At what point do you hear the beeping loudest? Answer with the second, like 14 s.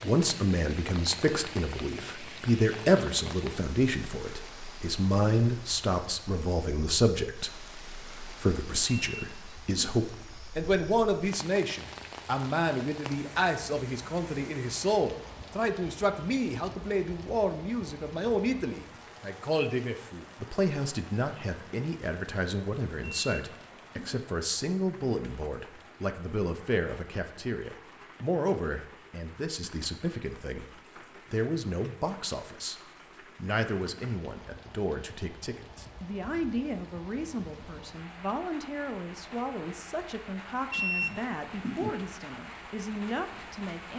41 s.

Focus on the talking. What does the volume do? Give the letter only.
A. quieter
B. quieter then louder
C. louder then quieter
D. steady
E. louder
A.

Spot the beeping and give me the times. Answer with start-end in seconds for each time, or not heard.
8.9-10.1, 23.0-24.2, 40.7-41.9.